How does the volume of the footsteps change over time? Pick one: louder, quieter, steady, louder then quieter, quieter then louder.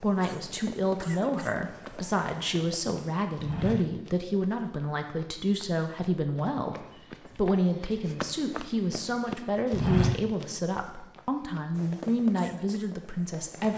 quieter then louder.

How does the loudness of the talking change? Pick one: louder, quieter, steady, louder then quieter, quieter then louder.
steady.